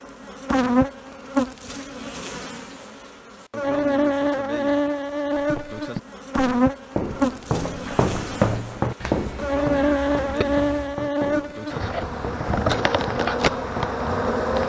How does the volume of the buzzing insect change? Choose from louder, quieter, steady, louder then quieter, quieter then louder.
steady.